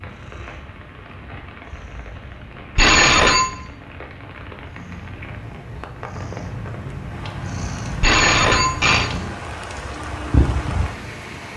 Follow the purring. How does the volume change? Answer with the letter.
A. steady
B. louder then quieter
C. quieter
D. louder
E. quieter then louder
D.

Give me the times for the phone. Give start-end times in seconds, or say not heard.
2.8-3.5, 8.0-9.1.